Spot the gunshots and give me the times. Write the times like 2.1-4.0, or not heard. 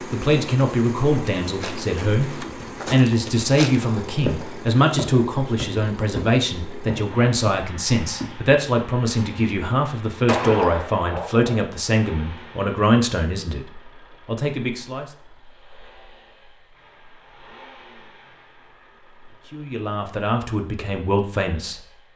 10.2-11.7.